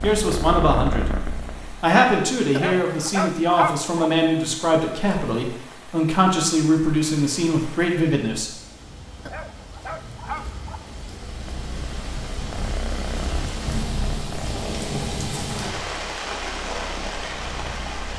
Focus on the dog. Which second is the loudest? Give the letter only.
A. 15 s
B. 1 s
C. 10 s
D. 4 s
D.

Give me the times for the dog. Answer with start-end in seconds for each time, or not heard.
2.5-4.1, 9.2-10.8.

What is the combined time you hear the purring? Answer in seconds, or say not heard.
9 s.